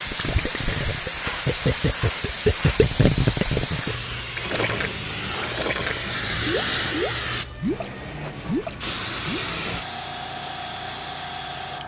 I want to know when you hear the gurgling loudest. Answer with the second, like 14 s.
3 s.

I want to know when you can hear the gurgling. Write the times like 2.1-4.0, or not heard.
0.1-9.4.